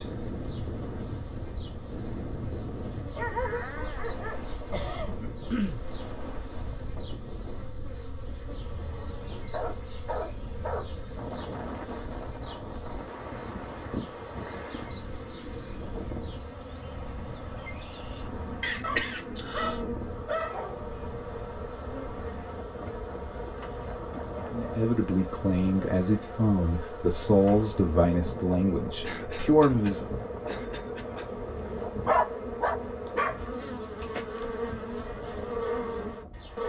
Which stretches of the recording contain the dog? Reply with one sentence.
You can hear the dog from 3.0 to 4.5 s, from 9.5 to 10.9 s, from 18.8 to 20.9 s and from 32.0 to 33.4 s.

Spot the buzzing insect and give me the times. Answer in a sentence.
The buzzing insect can be heard from 0.0 to 36.6 s.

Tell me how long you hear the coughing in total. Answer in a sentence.
The coughing can be heard for 5 seconds in total.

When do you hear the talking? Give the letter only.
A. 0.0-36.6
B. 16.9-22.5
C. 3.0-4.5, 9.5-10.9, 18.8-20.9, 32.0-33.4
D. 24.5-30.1
D.